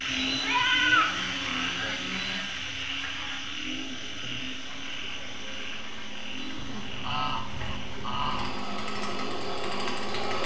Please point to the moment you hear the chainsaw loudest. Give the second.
10 s.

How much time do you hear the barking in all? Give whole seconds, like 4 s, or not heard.
not heard.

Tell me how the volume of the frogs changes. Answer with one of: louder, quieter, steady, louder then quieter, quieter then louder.
quieter.